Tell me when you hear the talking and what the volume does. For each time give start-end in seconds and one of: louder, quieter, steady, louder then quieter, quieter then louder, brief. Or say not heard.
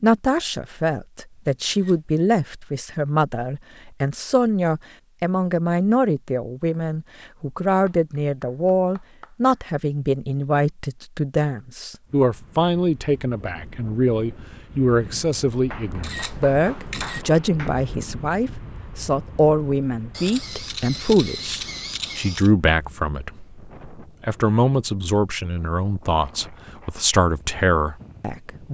0.0-28.6 steady.